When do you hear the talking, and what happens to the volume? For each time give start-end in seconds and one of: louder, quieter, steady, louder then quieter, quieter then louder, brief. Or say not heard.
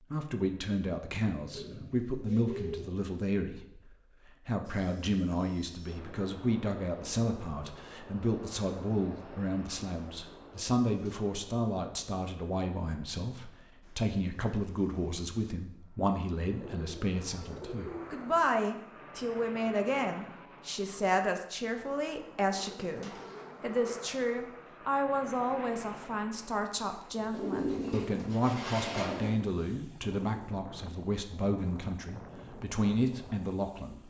0.1-34.0 steady.